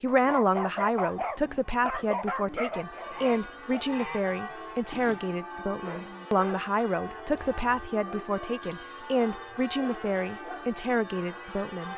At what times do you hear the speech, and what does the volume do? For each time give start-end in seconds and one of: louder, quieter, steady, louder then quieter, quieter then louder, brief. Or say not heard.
0.0-11.9 steady.